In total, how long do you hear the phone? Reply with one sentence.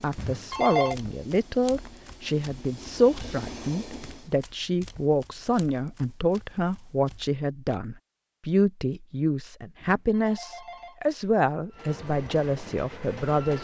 You can hear the phone for 2 seconds altogether.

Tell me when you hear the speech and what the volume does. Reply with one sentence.
You can hear the speech from 0.0 to 13.5 s, at a steady volume.